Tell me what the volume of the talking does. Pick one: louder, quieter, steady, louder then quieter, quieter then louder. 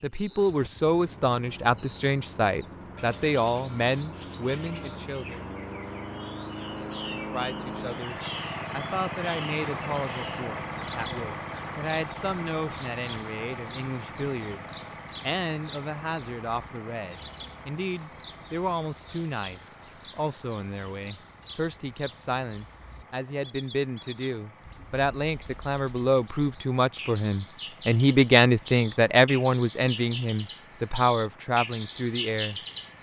quieter then louder.